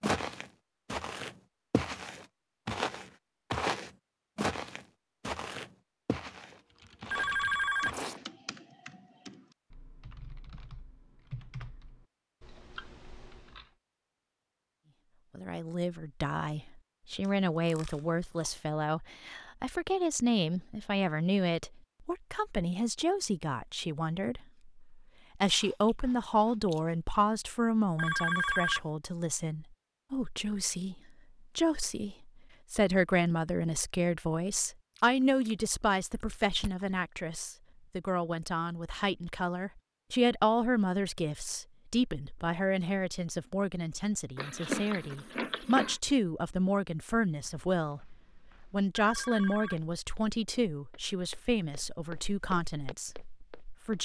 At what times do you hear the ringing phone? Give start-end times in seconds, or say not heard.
7.1-8.0, 27.9-28.8, 49.0-49.8.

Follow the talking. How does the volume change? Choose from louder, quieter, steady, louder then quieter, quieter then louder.
steady.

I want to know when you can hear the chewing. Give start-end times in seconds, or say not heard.
6.5-8.2, 17.2-18.6, 25.6-26.9, 35.0-36.9, 44.4-46.0.